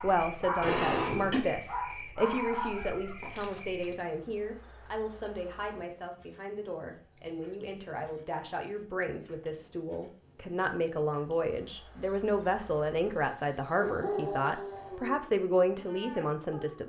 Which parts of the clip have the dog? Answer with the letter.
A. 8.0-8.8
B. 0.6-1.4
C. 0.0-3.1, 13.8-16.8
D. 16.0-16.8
C.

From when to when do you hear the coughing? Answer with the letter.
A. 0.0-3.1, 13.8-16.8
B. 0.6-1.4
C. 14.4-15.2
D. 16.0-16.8
B.